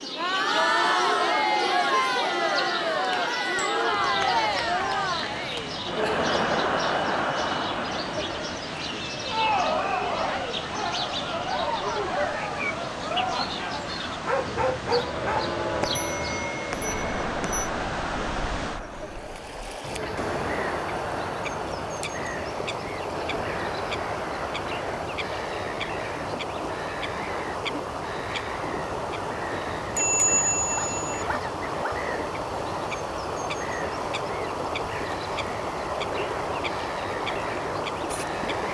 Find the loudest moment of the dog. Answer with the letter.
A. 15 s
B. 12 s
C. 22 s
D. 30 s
A.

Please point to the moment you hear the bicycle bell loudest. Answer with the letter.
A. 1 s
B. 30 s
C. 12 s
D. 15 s
B.